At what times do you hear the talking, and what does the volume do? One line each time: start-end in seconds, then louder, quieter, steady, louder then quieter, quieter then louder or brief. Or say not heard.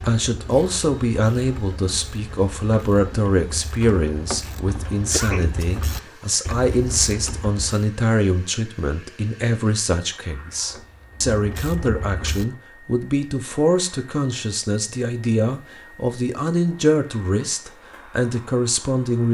0.0-19.2 steady.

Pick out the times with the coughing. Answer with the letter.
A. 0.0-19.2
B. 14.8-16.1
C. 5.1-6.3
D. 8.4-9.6
C.